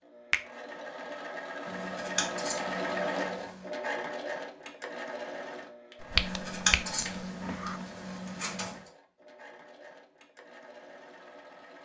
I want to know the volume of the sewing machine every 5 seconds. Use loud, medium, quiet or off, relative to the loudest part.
loud, medium, quiet.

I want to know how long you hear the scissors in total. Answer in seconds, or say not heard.
5 s.